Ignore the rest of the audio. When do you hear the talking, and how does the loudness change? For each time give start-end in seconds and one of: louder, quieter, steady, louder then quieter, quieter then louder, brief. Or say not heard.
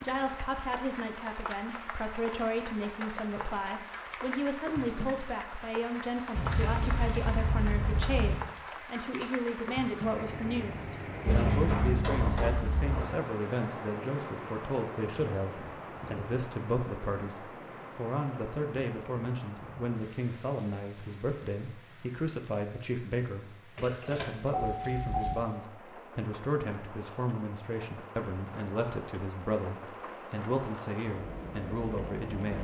0.0-32.5 steady.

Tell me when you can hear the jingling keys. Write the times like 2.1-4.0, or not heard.
6.3-8.3, 11.2-13.1, 23.8-25.4.